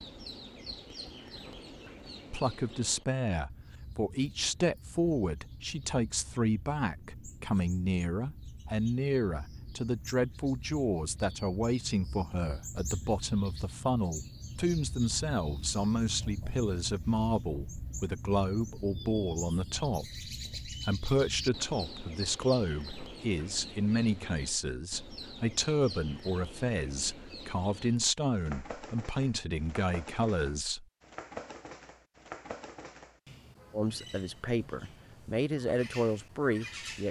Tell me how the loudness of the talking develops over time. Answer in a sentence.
The volume of the talking stays about the same.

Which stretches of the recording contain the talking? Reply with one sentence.
You can hear the talking from 2.3 to 30.9 s and from 33.7 to 37.0 s.